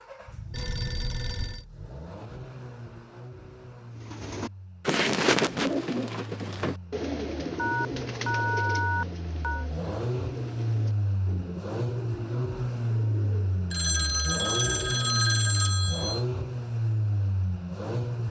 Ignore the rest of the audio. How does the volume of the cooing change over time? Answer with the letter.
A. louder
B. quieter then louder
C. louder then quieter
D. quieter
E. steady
D.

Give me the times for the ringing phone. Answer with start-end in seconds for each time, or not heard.
0.5-1.6, 7.5-9.7, 13.7-16.2.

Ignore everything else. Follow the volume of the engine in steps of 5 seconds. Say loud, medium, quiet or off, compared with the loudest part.
quiet, medium, loud, loud.